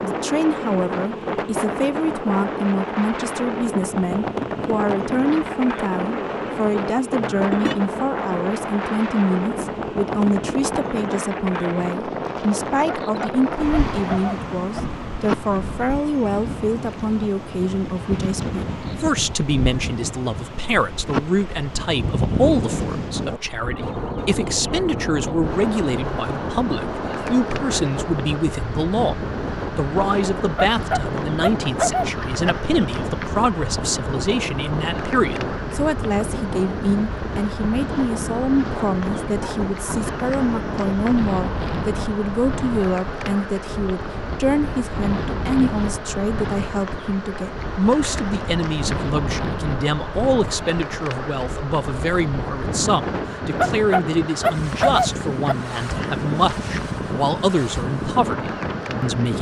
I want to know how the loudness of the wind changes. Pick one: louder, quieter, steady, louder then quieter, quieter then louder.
steady.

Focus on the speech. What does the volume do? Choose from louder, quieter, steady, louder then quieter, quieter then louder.
steady.